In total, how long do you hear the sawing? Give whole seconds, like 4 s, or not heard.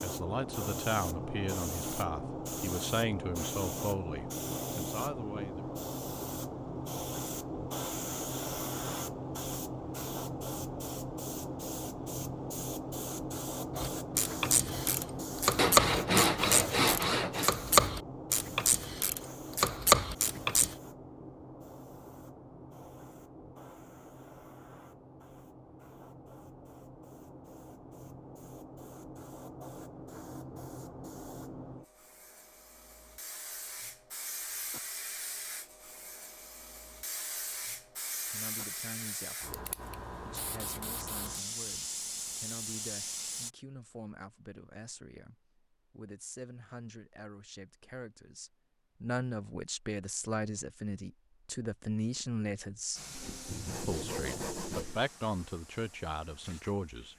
4 s.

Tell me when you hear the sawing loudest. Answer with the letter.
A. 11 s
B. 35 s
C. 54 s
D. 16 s
D.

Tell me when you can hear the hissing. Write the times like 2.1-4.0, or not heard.
0.0-43.5, 53.0-57.1.